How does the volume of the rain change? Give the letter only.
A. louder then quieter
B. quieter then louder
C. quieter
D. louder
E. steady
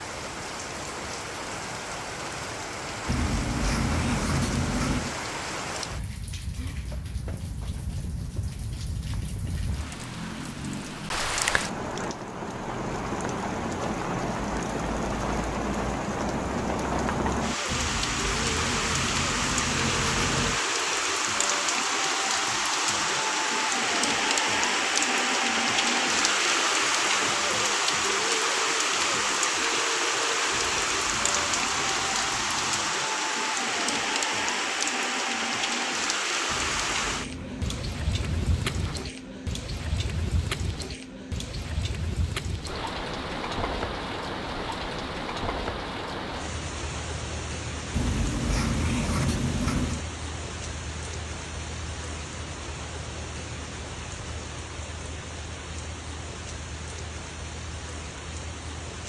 A.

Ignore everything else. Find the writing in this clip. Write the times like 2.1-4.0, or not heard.
3.0-5.2, 17.6-20.6, 30.5-32.9, 36.5-39.1, 47.9-50.0.